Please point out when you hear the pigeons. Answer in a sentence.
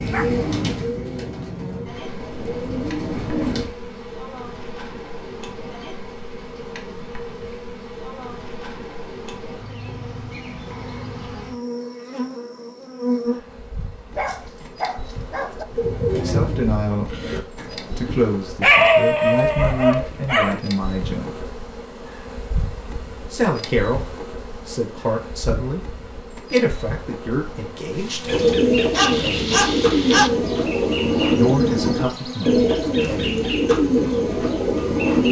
The pigeons can be heard from 0.0 to 3.7 s, from 15.7 to 18.4 s and from 28.2 to 35.2 s.